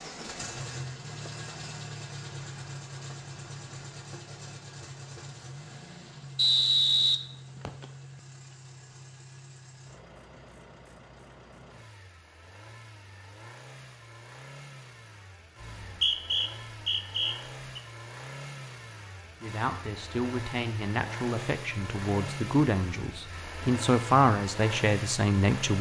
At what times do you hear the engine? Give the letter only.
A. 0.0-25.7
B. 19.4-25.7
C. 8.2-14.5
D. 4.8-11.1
A.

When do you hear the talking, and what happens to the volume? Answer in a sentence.
You can hear the talking from 19.4 to 25.7 s, getting louder.